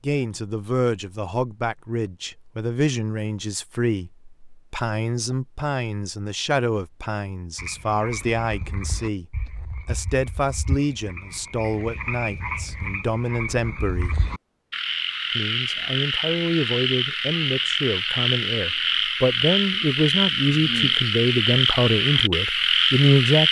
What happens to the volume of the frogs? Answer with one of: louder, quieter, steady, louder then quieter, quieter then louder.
louder.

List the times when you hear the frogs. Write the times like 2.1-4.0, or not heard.
7.5-23.4.